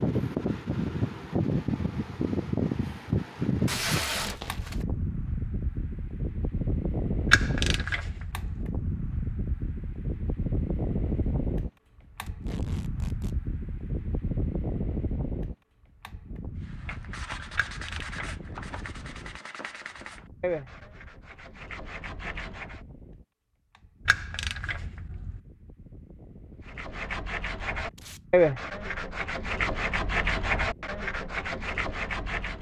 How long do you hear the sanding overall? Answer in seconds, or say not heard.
12 s.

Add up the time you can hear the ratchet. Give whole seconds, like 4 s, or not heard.
4 s.